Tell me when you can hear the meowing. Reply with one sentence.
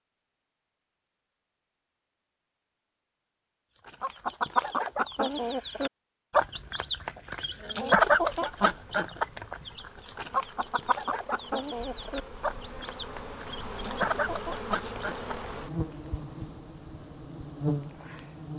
The meowing can't be heard in this clip.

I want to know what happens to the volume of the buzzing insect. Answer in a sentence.
The volume of the buzzing insect goes up.